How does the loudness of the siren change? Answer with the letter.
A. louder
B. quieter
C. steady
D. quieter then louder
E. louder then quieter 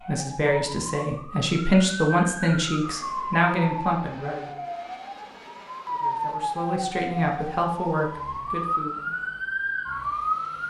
A.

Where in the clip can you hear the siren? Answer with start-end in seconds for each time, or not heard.
0.0-10.6.